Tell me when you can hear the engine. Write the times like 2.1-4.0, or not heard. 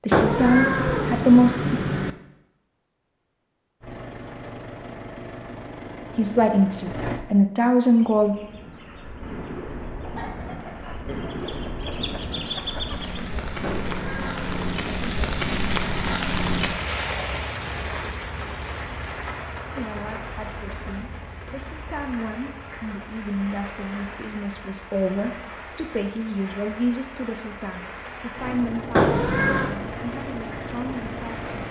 3.8-7.2, 28.4-31.6.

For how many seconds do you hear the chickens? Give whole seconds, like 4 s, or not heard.
5 s.